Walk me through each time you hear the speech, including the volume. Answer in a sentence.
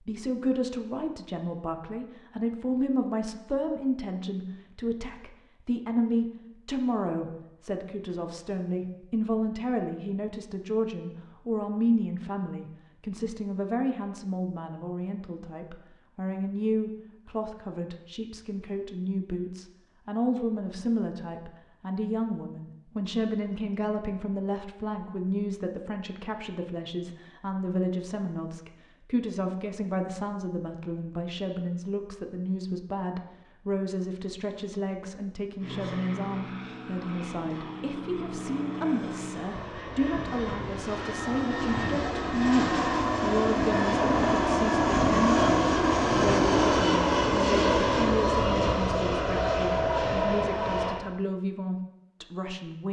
You can hear the speech from 0.0 to 52.8 s, at a steady volume.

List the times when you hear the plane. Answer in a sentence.
You can hear the plane from 35.5 to 51.0 s.